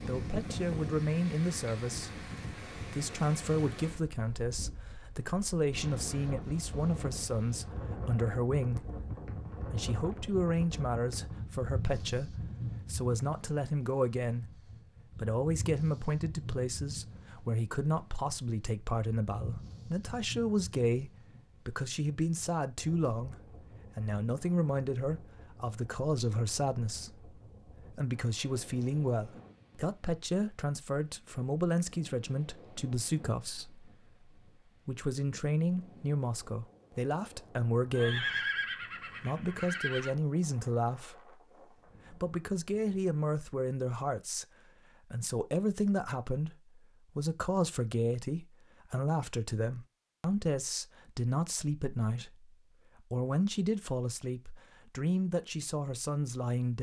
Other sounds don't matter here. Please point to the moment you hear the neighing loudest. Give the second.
38 s.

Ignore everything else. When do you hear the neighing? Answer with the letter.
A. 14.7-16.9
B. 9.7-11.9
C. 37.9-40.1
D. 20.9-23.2
C.